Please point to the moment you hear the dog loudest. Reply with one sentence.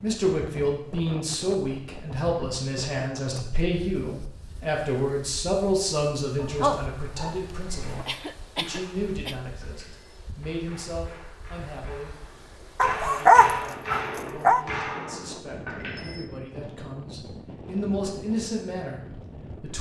The loudest moment of the dog is at 13 seconds.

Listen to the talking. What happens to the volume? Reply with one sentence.
The volume of the talking goes down, then up.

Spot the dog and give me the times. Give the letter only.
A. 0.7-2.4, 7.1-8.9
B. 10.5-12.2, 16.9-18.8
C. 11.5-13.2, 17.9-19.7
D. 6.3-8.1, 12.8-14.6
D.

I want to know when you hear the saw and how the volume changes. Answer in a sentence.
You can't hear the saw here.